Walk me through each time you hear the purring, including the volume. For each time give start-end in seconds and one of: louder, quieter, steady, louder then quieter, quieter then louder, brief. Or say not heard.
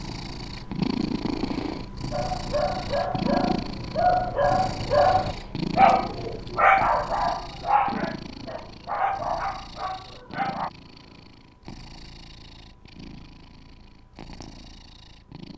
0.0-15.5 quieter.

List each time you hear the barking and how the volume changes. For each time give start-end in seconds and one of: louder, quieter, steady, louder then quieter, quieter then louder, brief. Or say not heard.
2.1-10.7 louder then quieter.